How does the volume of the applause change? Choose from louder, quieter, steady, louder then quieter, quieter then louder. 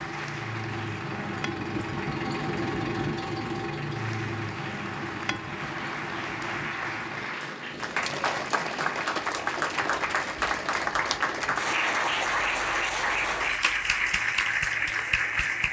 louder.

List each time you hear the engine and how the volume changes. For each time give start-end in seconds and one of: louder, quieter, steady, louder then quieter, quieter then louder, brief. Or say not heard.
0.0-15.6 quieter.